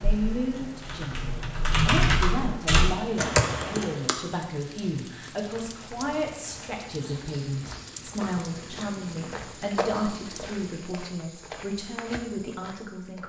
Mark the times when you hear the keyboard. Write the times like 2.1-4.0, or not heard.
0.0-4.2.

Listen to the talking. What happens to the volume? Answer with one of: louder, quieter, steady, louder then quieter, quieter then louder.
steady.